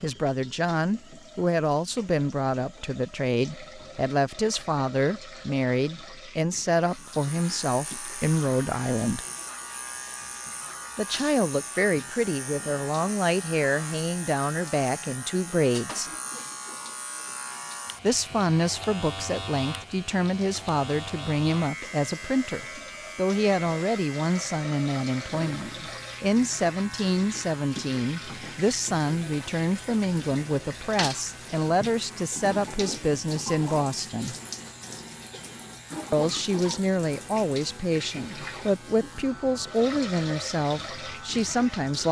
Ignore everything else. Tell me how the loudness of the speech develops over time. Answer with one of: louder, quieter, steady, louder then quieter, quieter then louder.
steady.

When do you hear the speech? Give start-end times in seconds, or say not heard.
0.0-9.2, 10.9-16.1, 18.0-34.4, 36.1-42.0.